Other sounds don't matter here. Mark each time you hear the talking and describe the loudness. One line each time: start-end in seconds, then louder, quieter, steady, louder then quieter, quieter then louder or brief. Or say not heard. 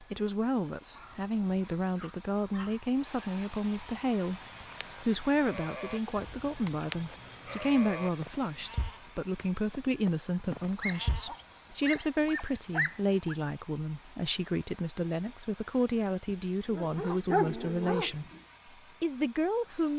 0.0-18.2 steady
19.0-19.9 brief.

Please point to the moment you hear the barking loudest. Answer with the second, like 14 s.
17 s.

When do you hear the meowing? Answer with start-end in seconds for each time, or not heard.
not heard.